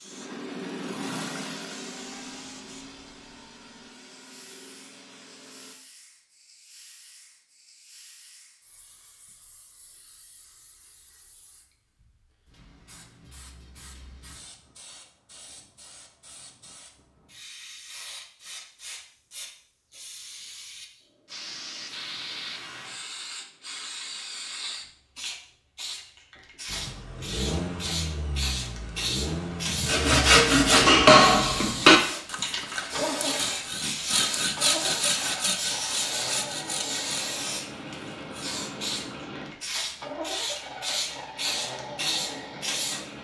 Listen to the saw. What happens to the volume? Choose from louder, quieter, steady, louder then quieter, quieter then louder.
quieter.